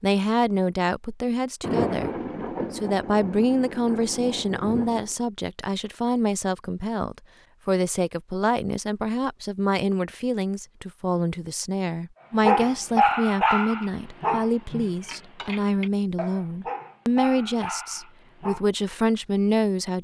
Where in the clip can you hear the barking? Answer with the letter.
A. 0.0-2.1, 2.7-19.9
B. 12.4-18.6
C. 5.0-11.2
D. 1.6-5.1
B.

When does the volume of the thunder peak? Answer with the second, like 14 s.
2 s.